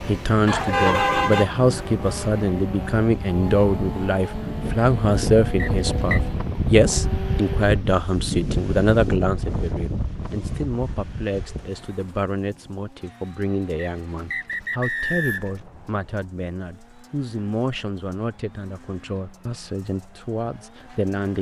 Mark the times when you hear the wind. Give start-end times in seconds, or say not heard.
0.0-11.7.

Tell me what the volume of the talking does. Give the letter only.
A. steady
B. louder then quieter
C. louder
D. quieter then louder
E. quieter
E.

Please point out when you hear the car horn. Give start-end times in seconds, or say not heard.
0.5-1.5.